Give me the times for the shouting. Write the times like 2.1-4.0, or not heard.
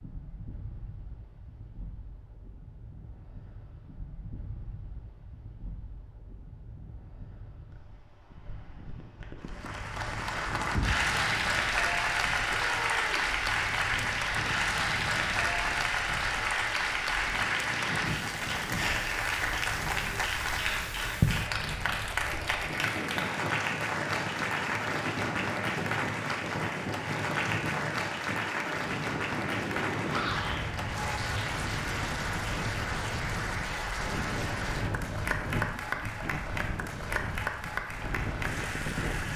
12.7-13.3, 30.1-30.6.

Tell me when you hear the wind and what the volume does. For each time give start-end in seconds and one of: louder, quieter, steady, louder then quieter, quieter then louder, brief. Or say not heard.
0.0-39.3 louder.